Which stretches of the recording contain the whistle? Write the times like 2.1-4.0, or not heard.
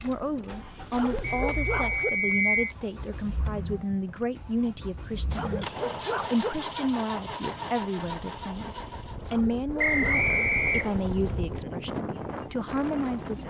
1.2-2.8, 9.8-11.0.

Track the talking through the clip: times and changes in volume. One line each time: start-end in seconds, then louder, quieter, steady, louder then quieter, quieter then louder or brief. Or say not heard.
0.0-13.4 steady.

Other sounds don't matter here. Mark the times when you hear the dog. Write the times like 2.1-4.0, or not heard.
0.9-2.1, 5.3-6.5, 9.2-10.3.